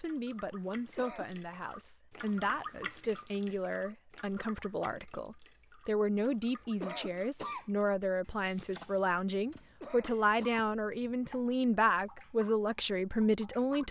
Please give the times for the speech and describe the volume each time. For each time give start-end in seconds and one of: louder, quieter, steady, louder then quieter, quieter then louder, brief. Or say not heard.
0.0-13.8 louder.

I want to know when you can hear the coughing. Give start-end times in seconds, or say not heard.
0.8-1.4, 6.6-7.7, 9.6-10.7.